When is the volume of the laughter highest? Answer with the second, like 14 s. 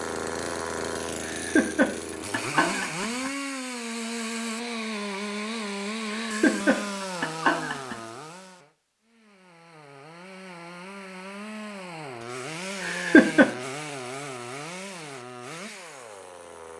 13 s.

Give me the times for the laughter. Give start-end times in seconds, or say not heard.
1.2-3.3, 6.1-8.0, 12.8-13.5.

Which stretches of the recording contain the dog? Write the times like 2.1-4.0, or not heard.
not heard.